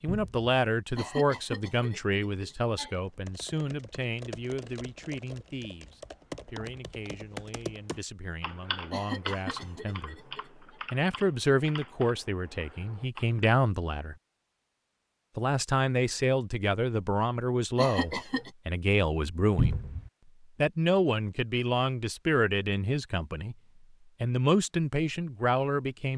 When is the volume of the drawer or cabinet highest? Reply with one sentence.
The volume of the drawer or cabinet peaks at 20 seconds.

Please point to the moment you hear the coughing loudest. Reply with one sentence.
The loudest moment of the coughing is at 18 seconds.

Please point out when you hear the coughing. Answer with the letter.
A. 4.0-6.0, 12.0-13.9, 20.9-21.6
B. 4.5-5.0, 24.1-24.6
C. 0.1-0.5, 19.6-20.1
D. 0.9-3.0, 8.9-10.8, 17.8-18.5
D.